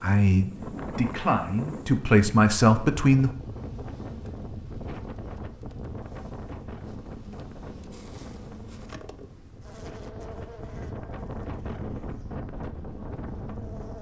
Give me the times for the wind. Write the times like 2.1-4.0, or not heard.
0.2-13.9.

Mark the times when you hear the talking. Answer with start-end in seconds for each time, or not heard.
0.0-3.3.